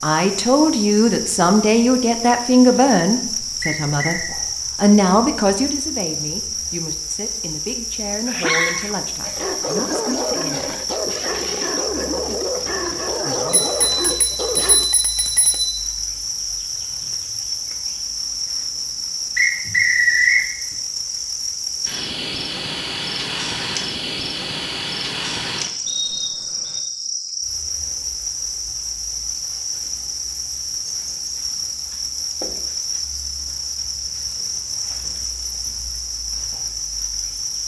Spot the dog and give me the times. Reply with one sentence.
The dog can be heard from 8.2 to 14.9 s.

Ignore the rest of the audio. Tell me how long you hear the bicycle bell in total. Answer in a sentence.
The bicycle bell can be heard for 2 seconds in total.